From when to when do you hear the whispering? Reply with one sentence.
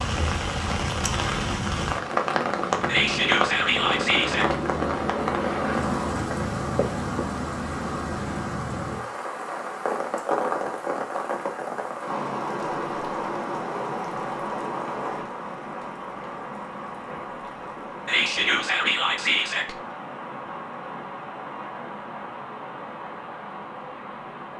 You can hear the whispering from 2.9 to 4.5 s and from 18.1 to 19.8 s.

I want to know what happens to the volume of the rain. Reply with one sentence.
The volume of the rain goes down.